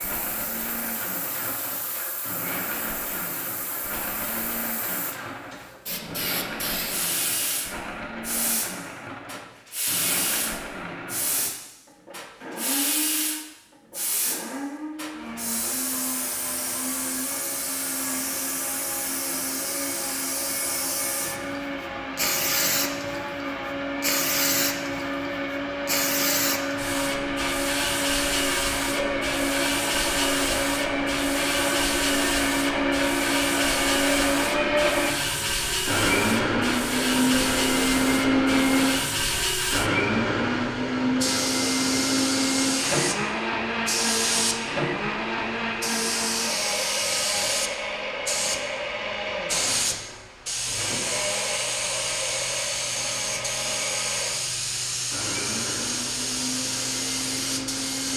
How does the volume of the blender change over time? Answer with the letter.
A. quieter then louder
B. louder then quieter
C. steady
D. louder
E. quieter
B.